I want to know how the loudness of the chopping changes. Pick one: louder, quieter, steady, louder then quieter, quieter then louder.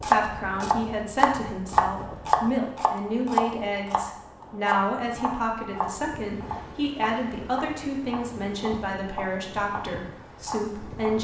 quieter.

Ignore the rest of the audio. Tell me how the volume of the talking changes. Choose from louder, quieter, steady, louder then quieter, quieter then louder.
steady.